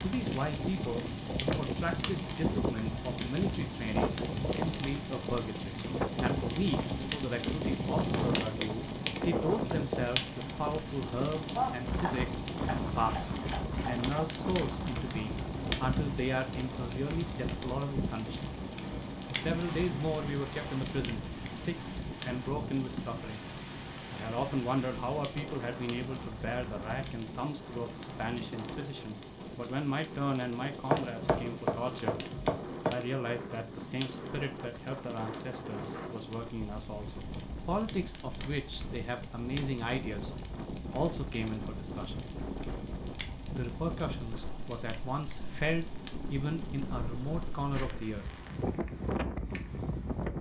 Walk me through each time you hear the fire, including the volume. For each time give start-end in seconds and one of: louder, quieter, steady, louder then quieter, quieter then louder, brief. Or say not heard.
0.0-50.3 quieter.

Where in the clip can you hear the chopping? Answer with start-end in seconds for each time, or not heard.
11.6-14.2, 30.9-32.9.